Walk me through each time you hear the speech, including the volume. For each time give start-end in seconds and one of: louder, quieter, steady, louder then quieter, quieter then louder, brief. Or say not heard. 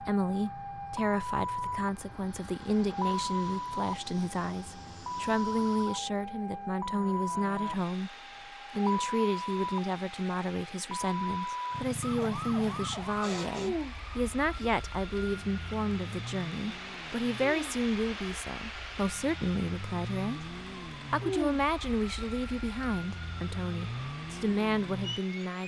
0.0-25.6 steady.